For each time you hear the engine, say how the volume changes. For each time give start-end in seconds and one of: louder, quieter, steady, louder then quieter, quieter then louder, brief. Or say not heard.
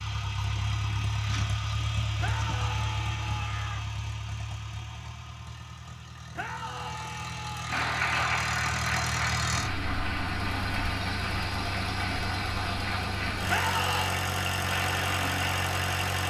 0.0-16.2 quieter then louder.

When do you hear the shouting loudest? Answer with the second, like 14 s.
14 s.